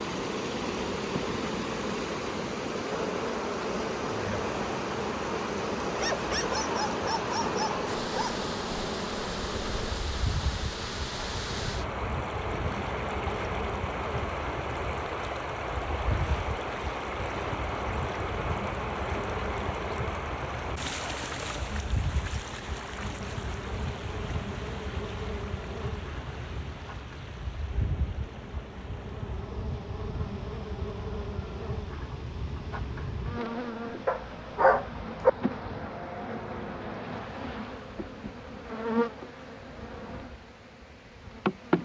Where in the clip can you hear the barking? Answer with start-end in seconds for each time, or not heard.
6.0-8.4, 34.0-35.3.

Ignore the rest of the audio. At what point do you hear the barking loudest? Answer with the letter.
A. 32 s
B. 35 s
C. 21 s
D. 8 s
B.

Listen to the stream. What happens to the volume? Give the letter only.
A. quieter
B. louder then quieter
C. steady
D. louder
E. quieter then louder
A.